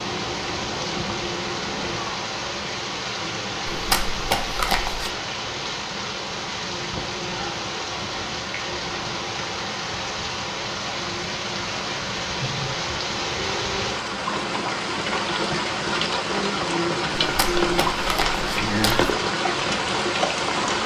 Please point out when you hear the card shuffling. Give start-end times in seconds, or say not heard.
3.7-5.2, 17.2-19.1.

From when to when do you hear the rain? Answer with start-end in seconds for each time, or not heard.
0.0-20.8.